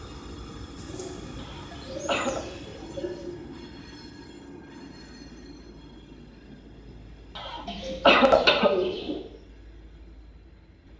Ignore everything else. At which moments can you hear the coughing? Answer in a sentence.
You can hear the coughing from 1.4 to 2.5 s and from 7.3 to 8.7 s.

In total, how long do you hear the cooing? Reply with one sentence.
The cooing can be heard for 4 seconds in total.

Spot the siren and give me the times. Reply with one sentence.
You can't hear the siren here.